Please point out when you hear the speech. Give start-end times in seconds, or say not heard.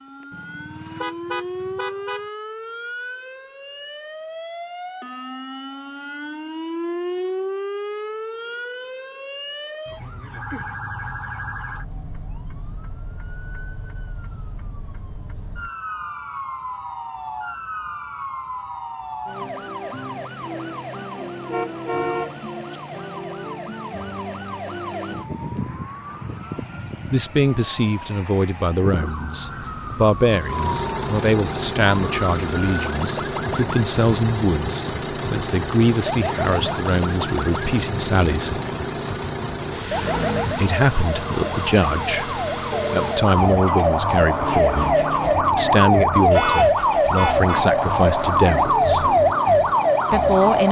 27.1-38.6, 40.5-49.1, 50.1-50.6.